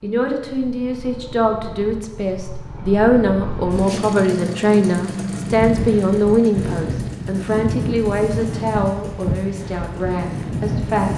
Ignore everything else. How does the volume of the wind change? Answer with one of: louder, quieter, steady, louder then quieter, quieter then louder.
steady.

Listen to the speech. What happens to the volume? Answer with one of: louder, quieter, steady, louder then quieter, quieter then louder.
louder then quieter.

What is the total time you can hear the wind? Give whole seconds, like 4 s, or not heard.
6 s.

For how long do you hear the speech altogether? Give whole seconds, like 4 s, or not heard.
11 s.